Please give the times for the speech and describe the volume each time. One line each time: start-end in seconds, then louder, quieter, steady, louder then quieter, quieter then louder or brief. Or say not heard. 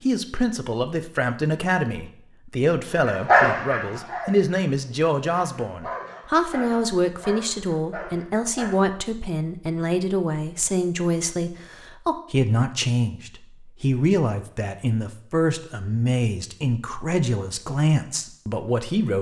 0.0-19.1 steady.